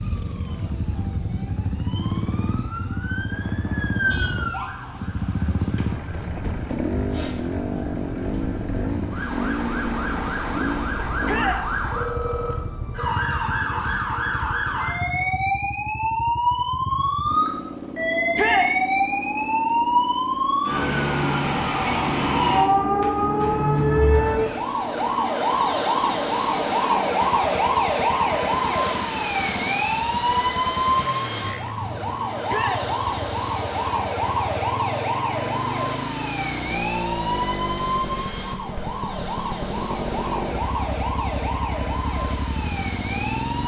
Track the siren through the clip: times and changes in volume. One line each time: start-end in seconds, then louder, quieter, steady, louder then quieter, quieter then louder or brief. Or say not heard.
0.0-43.6 louder then quieter.